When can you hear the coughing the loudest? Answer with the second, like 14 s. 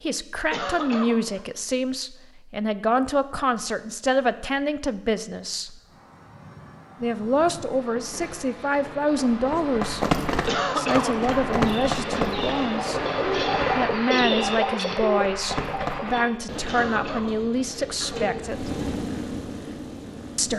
11 s.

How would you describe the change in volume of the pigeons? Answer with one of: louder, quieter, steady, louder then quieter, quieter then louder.
louder then quieter.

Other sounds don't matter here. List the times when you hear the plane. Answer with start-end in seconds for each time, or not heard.
5.7-14.0, 18.4-20.5.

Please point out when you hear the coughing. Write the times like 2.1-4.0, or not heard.
0.5-1.4, 10.4-11.3, 16.6-17.4.